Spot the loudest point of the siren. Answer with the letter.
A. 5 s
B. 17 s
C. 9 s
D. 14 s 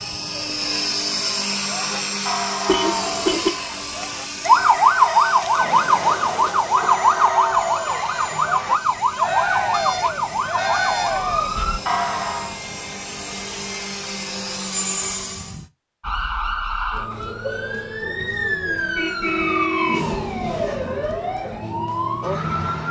A.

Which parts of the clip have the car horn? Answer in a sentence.
The car horn can be heard from 2.6 to 3.5 s, from 9.7 to 11.2 s and from 18.9 to 20.8 s.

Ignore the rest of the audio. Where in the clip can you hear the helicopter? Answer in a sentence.
The helicopter can be heard from 0.0 to 15.7 s.